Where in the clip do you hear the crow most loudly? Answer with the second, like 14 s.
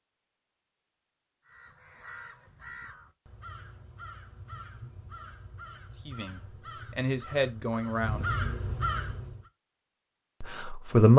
8 s.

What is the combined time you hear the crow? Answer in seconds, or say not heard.
8 s.